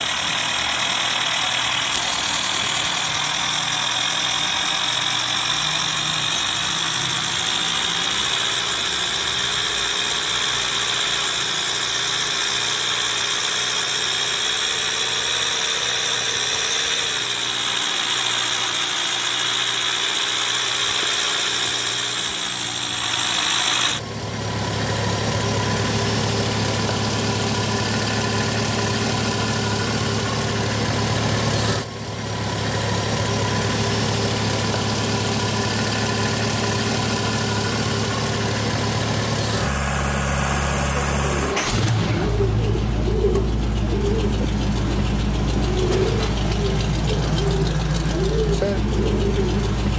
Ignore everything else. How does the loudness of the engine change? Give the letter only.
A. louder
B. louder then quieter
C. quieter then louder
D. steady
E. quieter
D.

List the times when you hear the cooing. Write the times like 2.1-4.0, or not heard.
41.3-49.8.